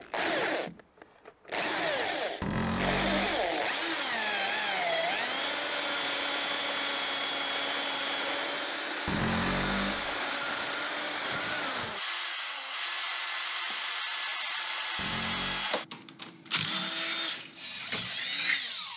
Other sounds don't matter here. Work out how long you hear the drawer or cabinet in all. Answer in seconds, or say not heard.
3 s.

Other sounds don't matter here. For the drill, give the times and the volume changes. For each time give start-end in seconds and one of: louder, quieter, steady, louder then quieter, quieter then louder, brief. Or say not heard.
0.0-18.9 steady.